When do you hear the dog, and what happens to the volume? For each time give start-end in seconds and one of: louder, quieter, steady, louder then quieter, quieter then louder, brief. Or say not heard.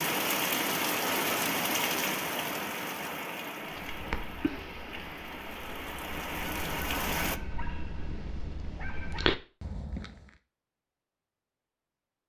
3.8-10.3 quieter then louder.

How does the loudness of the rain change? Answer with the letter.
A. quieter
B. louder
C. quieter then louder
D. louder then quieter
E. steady
C.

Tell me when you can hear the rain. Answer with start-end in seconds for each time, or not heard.
0.0-7.4.